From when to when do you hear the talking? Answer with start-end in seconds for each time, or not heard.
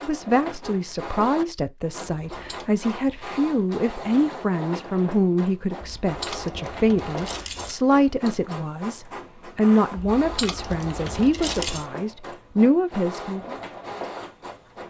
0.0-13.6.